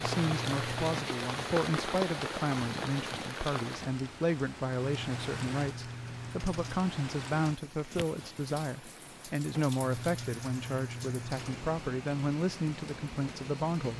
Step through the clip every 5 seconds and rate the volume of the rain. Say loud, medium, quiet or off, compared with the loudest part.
loud, medium, medium.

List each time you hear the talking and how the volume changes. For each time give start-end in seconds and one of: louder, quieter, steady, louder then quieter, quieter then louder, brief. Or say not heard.
0.0-13.9 steady.